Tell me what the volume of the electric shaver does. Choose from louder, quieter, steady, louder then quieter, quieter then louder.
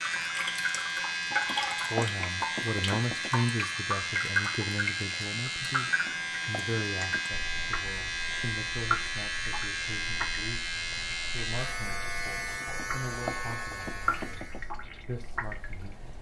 steady.